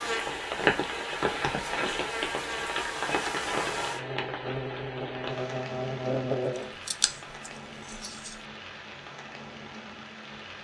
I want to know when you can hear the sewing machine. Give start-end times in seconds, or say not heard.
not heard.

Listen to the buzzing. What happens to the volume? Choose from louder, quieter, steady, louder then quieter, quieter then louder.
louder.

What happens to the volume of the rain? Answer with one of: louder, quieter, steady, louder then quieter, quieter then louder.
quieter.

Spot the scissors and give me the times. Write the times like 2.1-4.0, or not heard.
6.5-8.4.